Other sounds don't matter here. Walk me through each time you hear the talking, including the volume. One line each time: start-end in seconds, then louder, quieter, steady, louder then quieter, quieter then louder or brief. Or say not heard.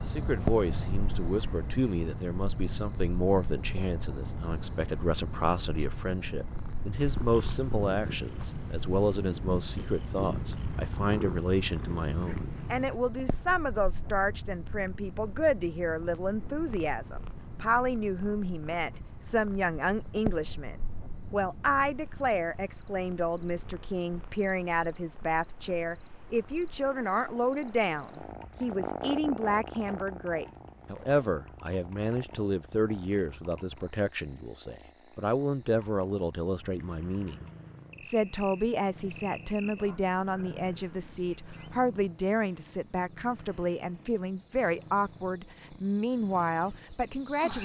0.1-47.5 steady.